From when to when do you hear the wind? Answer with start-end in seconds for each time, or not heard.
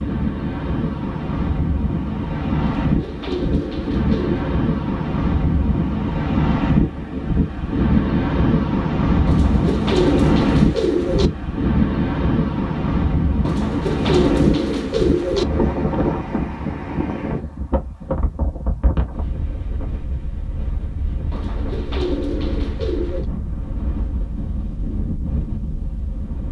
0.0-26.4.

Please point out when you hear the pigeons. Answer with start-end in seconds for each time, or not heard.
2.8-4.5, 9.2-11.3, 13.4-15.4, 21.3-23.2.